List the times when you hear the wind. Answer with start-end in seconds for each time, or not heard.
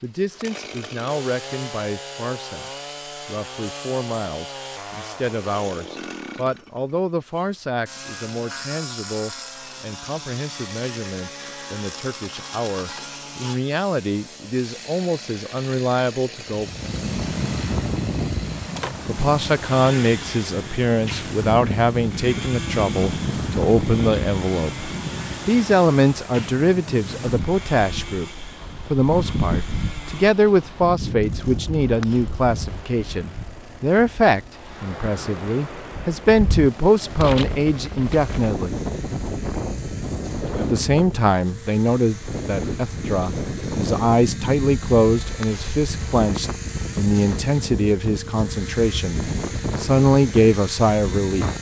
16.5-51.5.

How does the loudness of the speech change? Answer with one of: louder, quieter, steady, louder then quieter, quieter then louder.
louder.